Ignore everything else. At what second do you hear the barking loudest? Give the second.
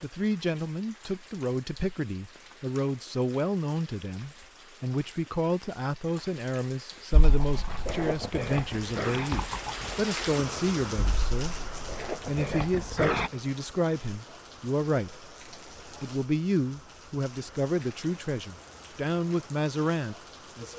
13 s.